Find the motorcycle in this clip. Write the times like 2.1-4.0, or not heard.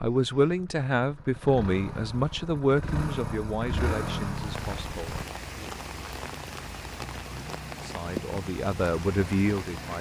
0.0-5.2.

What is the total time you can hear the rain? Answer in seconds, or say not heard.
6 s.